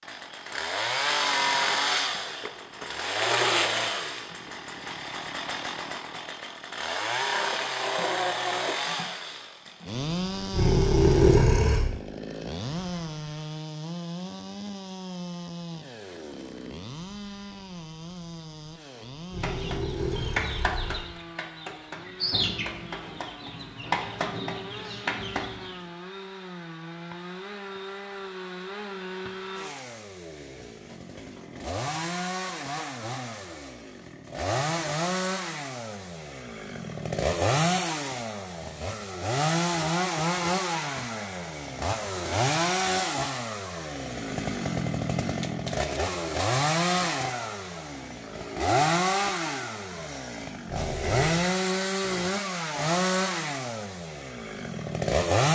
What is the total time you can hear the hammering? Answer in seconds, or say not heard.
not heard.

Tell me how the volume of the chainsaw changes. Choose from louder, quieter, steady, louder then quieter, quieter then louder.
quieter then louder.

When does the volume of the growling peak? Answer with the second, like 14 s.
11 s.